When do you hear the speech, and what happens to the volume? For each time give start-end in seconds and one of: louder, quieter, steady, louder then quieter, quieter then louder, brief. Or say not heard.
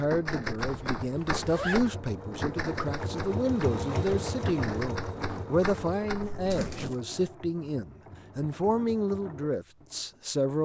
0.0-10.6 steady.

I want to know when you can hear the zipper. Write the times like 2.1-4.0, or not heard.
0.6-1.9, 6.2-7.0.